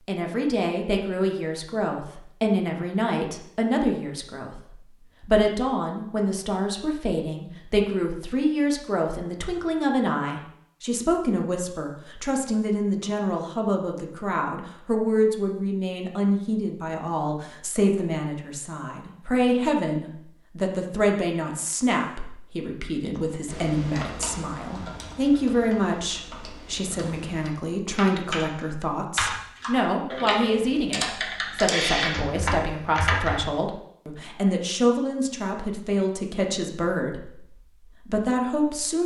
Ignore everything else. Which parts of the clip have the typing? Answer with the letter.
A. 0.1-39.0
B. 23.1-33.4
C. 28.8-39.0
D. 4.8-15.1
B.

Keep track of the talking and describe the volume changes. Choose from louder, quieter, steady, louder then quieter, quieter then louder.
steady.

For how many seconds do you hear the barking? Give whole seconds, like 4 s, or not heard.
not heard.